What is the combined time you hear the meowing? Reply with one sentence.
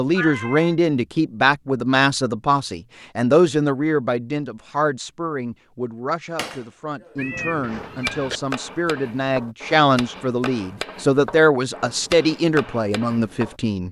The meowing can be heard for 2 seconds in total.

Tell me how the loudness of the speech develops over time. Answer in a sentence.
The loudness of the speech goes down, then up.